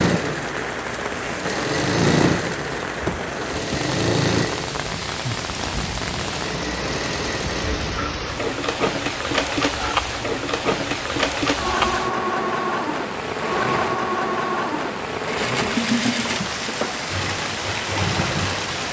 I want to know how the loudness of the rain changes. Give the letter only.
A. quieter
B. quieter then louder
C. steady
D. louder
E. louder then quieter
C.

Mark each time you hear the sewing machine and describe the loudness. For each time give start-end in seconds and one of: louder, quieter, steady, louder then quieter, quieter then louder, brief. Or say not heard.
0.0-18.8 steady.